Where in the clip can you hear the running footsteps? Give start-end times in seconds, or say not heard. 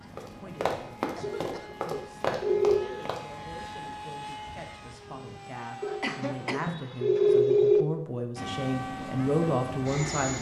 0.1-3.2.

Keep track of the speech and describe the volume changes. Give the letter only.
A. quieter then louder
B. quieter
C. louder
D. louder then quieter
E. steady
C.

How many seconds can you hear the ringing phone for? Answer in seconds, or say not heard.
4 s.